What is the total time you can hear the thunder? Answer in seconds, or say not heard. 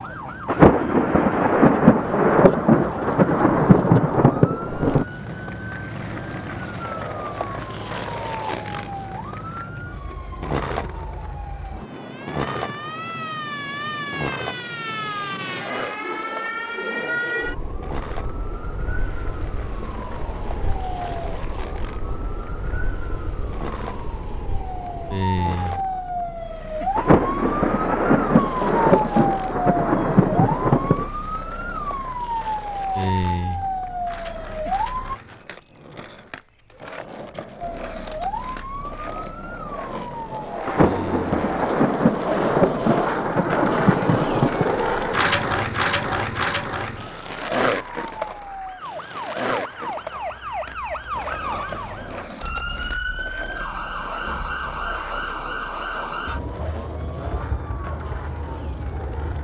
13 s.